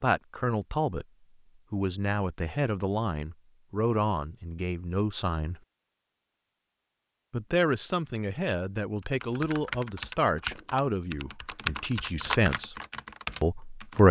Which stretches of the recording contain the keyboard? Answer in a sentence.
The keyboard can be heard from 9.0 to 14.0 s.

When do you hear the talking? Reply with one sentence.
The talking can be heard from 0.0 to 1.1 s, from 1.7 to 5.5 s, from 7.3 to 12.8 s and from 13.4 to 14.0 s.